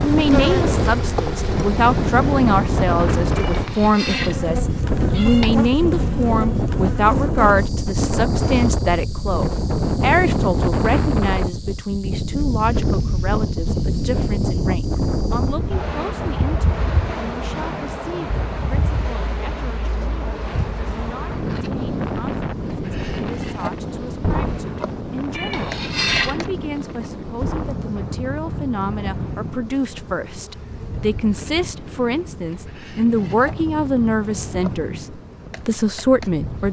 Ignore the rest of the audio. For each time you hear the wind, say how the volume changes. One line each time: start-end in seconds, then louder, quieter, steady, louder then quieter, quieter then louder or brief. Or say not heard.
0.0-36.6 quieter.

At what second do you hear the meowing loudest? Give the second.
26 s.